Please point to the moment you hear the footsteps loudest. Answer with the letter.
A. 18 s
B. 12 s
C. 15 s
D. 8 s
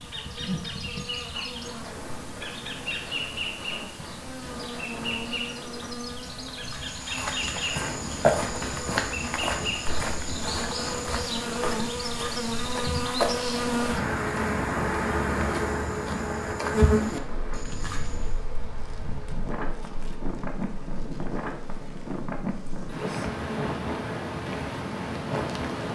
D.